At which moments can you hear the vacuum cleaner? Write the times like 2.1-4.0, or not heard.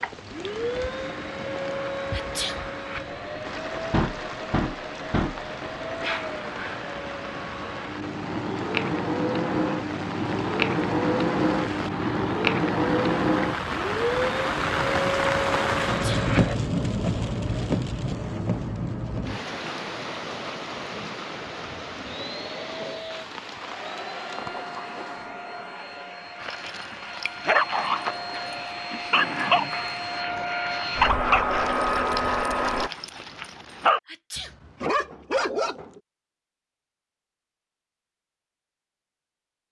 0.0-16.6, 22.1-32.9.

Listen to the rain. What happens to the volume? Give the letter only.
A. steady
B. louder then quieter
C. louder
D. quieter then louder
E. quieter
B.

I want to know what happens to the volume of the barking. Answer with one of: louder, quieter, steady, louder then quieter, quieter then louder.
quieter then louder.